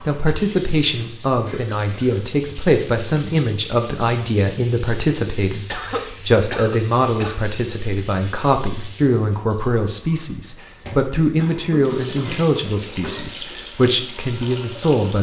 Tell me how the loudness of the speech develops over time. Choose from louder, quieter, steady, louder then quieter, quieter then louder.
steady.